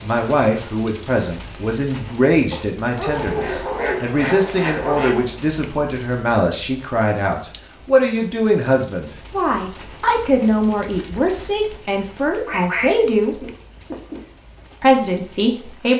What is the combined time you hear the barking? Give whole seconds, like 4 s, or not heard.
3 s.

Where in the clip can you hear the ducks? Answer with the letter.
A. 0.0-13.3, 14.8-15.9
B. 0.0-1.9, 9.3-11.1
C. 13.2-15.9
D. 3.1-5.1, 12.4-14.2
D.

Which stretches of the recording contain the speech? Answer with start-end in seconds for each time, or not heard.
0.0-13.3, 14.8-15.9.